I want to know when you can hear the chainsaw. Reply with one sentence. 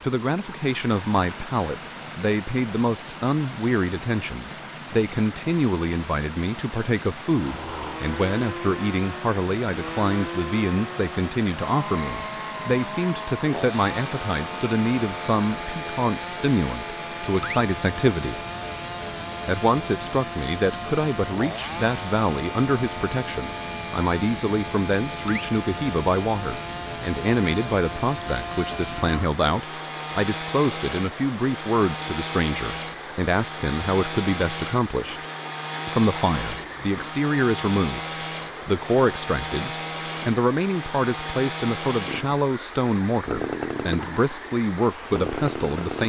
You can hear the chainsaw from 7.3 to 46.0 s.